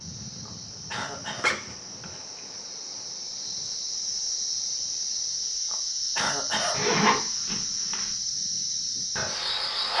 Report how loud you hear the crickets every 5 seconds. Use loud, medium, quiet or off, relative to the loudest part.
medium, loud.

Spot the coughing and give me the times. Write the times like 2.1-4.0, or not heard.
0.5-1.5, 5.7-6.8.